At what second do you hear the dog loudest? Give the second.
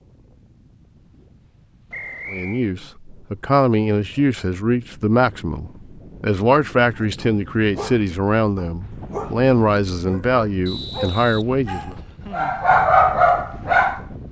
13 s.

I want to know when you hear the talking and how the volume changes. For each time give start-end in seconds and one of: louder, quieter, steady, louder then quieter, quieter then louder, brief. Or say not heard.
2.3-11.9 steady.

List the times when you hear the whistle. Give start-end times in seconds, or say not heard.
1.9-2.7, 10.7-12.2.